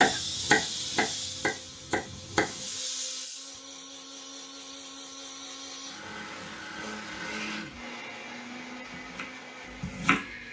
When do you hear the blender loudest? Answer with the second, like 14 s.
7 s.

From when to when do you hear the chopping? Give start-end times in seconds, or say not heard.
0.0-2.5, 8.9-10.4.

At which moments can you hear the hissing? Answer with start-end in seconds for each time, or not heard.
0.0-3.6.